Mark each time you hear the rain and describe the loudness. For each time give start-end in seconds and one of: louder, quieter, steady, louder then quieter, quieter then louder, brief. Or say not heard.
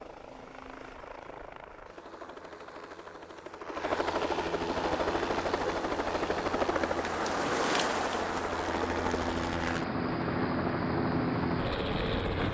4.8-12.4 louder then quieter.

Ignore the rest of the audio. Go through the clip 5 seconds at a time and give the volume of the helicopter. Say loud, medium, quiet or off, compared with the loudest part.
medium, loud, loud.